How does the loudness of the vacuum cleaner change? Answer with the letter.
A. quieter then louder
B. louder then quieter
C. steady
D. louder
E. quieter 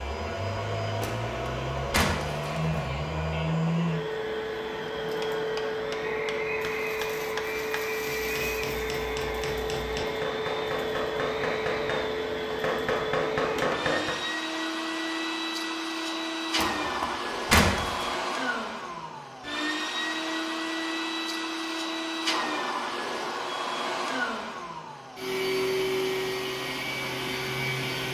C.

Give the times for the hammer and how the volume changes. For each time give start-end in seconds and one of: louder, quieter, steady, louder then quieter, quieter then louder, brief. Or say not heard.
5.0-14.2 louder.